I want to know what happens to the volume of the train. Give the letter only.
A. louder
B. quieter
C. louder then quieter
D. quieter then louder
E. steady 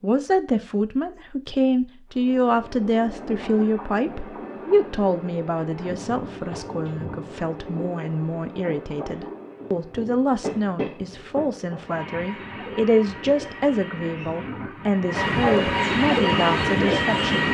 A.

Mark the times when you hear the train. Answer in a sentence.
The train can be heard from 2.1 to 17.4 s.